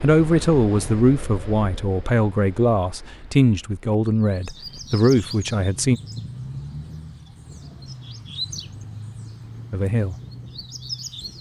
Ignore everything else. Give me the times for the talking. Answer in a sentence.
You can hear the talking from 0.0 to 6.0 s and from 9.7 to 10.2 s.